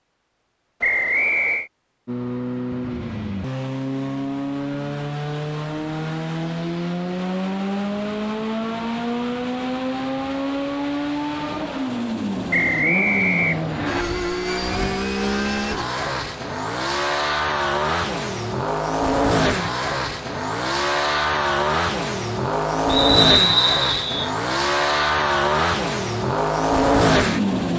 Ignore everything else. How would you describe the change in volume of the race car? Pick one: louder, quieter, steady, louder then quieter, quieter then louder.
louder.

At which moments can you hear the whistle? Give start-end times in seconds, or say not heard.
0.8-1.7, 12.5-14.1, 22.9-24.3.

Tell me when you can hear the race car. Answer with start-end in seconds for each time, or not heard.
2.0-27.7.